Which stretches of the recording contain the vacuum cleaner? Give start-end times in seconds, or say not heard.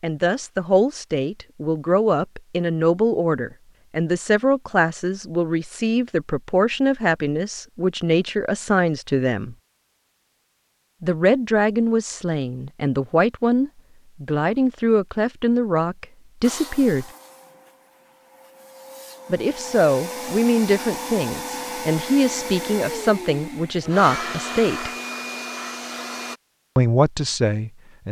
16.4-26.4.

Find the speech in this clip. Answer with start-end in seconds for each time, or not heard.
0.0-9.6, 11.0-17.1, 19.3-24.9, 26.8-28.0.